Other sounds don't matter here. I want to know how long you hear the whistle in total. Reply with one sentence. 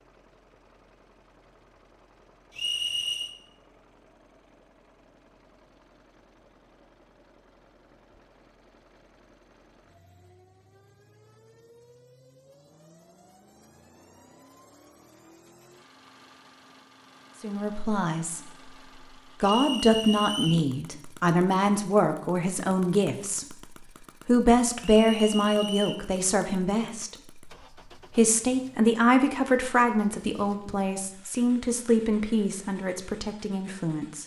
The whistle can be heard for 3 seconds in total.